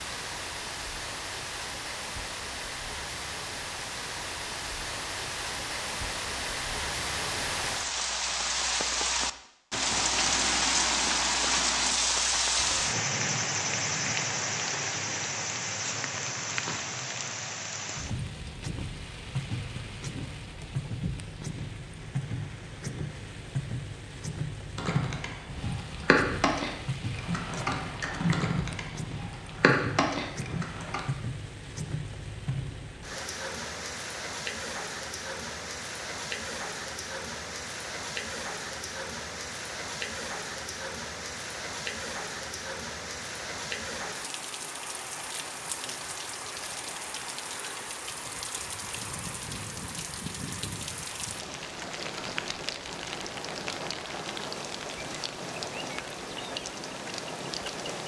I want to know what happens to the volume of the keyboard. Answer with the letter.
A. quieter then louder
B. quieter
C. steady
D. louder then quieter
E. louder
A.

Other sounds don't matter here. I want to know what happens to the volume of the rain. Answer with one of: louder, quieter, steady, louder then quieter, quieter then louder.
quieter.